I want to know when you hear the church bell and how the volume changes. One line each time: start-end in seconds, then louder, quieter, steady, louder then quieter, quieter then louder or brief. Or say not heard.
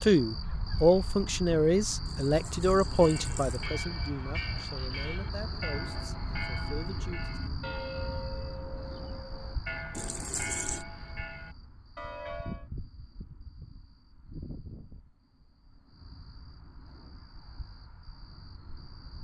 3.0-12.7 steady.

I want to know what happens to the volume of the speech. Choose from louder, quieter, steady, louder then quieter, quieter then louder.
quieter.